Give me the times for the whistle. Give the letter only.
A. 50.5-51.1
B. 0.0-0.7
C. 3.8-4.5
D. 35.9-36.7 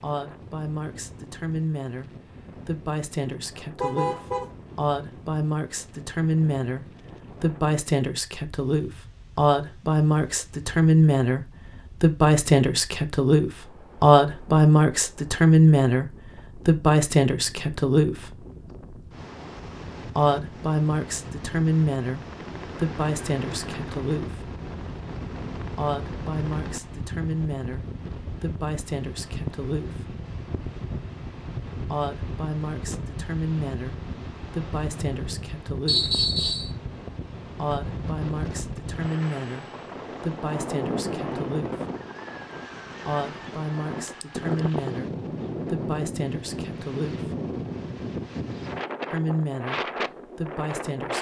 D.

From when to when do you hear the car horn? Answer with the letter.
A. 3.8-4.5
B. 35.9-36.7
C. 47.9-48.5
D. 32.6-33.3
A.